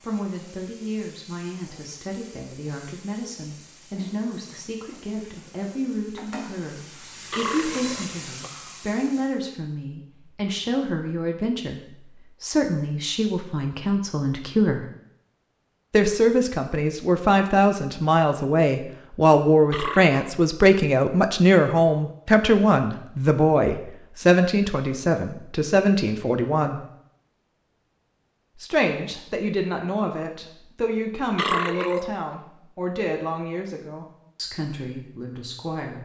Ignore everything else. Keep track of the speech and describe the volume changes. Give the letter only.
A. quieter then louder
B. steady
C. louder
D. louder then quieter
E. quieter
D.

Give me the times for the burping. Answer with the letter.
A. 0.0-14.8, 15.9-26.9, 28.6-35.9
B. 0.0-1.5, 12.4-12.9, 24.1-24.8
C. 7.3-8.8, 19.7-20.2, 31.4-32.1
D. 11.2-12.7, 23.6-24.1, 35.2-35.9
C.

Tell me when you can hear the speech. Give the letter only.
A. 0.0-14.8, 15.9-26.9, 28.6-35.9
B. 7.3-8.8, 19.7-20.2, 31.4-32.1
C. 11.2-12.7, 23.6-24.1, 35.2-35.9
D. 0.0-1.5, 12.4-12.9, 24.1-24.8
A.